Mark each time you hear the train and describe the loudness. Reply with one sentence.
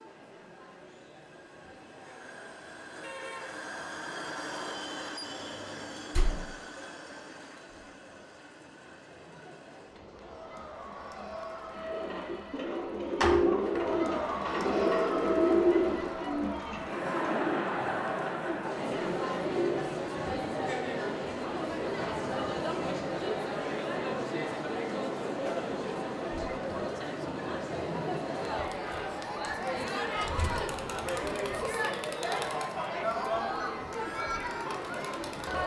The train can be heard from 0.0 to 12.7 s, getting louder then quieter.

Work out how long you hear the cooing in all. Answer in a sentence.
The cooing can be heard for 8 seconds in total.